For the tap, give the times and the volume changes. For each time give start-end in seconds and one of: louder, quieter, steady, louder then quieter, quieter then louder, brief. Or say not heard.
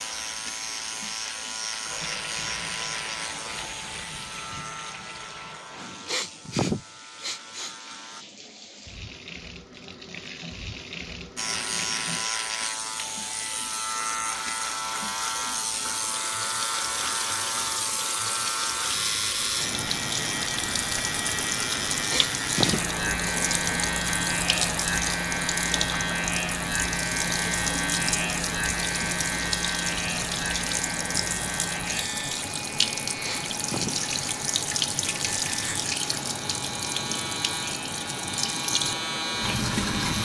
0.0-40.2 louder.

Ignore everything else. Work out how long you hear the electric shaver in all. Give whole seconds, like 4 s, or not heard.
37 s.